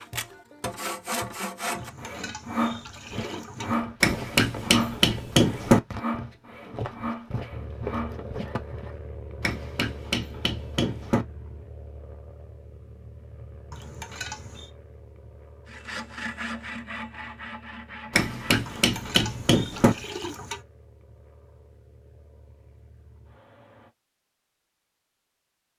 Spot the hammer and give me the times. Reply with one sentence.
You can hear the hammer from 4.0 to 5.8 s, from 9.4 to 11.2 s and from 18.1 to 19.9 s.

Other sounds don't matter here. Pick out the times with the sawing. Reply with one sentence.
The sawing can be heard from 0.0 to 8.9 s and from 15.7 to 18.9 s.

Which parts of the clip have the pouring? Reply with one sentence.
The pouring can be heard from 1.7 to 3.8 s, from 13.7 to 14.7 s and from 18.6 to 20.6 s.